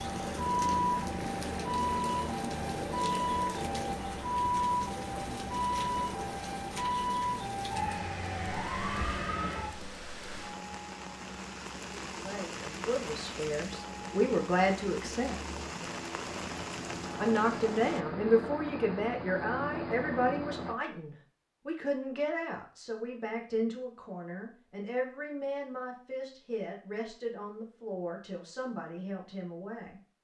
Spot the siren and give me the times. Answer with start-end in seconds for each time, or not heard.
0.0-9.8.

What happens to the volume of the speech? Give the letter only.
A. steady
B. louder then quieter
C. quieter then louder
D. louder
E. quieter
E.